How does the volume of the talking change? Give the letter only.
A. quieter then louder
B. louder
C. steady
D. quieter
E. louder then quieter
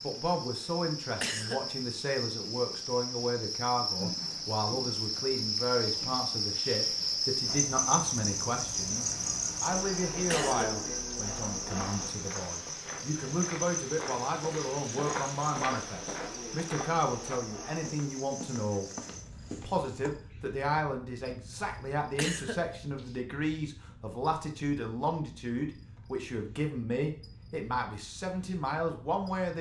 C.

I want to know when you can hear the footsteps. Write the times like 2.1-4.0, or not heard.
11.7-20.1.